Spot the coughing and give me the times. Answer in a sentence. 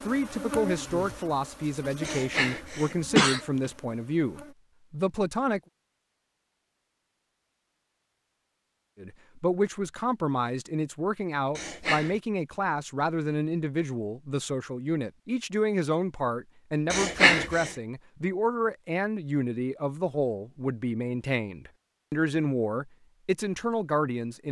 The coughing can be heard from 2.0 to 3.4 s, from 11.6 to 12.2 s and from 16.9 to 17.7 s.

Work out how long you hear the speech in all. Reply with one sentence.
You can hear the speech for 21 seconds altogether.